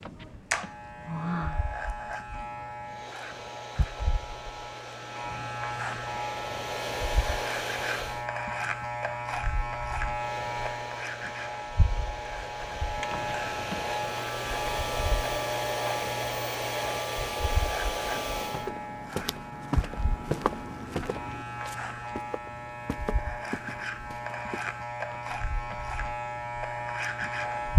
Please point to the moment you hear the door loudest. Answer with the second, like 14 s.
1 s.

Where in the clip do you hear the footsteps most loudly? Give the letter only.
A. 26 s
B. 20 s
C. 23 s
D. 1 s
B.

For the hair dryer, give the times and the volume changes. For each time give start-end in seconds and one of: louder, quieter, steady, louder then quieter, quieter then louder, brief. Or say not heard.
2.8-8.3 louder
10.1-18.7 louder.